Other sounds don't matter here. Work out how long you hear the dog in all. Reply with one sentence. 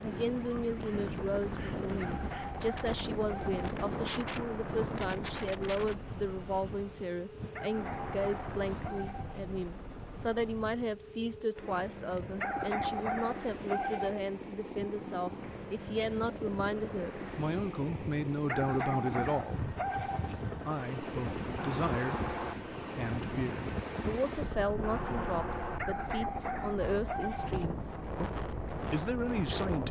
The dog can be heard for 9 seconds in total.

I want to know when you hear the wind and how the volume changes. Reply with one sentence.
You can hear the wind from 0.0 to 29.8 s, getting quieter then louder.